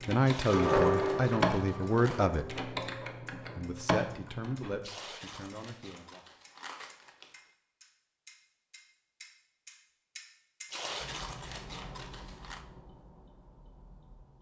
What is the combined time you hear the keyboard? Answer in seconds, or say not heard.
5 s.